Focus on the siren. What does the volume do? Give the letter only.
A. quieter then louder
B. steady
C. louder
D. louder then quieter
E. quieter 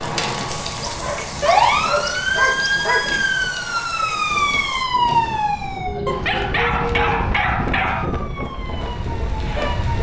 E.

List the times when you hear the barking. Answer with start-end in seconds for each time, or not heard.
0.8-3.2, 6.0-8.1.